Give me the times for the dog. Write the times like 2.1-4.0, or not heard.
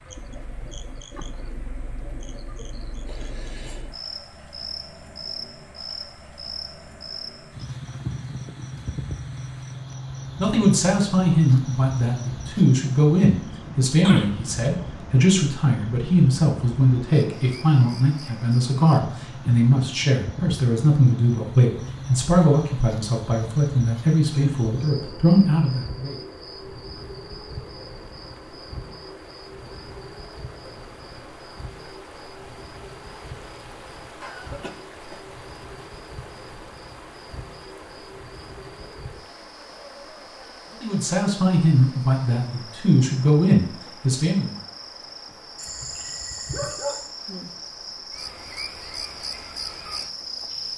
45.5-47.1.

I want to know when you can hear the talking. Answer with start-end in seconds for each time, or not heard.
10.3-26.1, 40.8-44.5.